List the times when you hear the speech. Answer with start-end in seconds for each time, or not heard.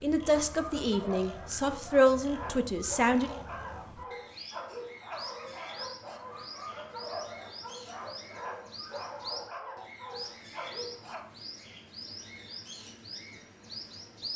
0.0-3.3.